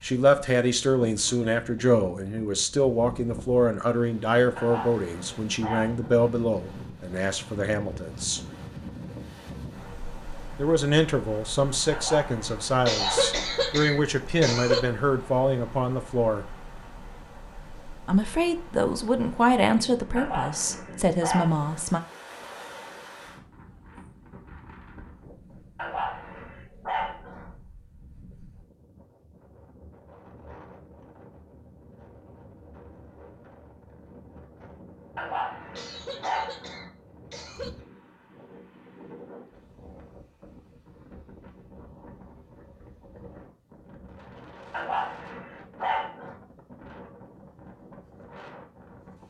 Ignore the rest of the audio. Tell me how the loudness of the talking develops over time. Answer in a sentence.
The volume of the talking stays about the same.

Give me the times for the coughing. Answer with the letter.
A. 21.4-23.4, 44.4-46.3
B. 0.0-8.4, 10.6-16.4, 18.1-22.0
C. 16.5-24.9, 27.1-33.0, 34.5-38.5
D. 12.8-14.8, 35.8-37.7
D.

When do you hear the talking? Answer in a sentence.
The talking can be heard from 0.0 to 8.4 s, from 10.6 to 16.4 s and from 18.1 to 22.0 s.